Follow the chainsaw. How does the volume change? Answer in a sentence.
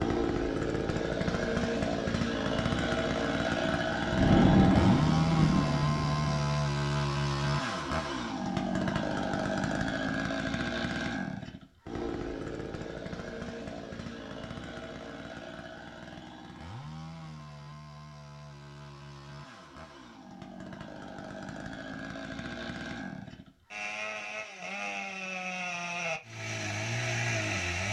The volume of the chainsaw goes down, then up.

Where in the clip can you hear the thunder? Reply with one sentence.
You can hear the thunder from 3.6 to 6.5 s.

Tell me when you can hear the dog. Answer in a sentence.
You can't hear the dog here.